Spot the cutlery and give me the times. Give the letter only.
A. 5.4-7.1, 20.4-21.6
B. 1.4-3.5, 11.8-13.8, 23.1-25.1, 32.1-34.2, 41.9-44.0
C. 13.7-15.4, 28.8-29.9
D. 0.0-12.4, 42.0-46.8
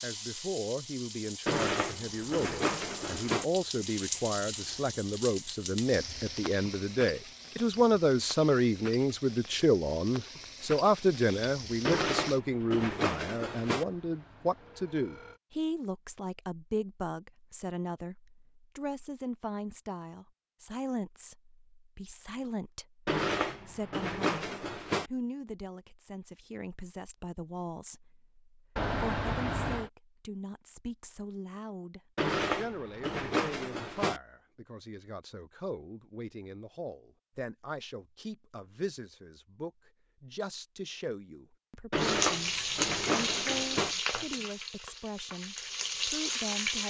B.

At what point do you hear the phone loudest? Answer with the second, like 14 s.
29 s.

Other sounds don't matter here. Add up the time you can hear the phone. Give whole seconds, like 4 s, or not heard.
3 s.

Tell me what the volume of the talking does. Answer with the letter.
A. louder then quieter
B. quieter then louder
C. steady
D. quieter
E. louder
D.